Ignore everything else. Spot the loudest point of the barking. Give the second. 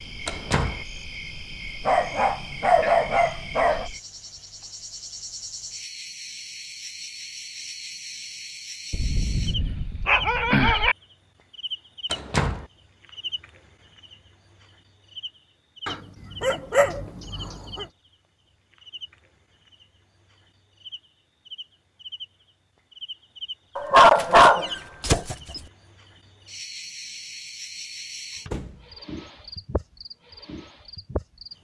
24 s.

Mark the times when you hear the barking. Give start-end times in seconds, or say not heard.
1.9-3.9, 8.9-10.9, 15.8-17.9, 23.8-25.6.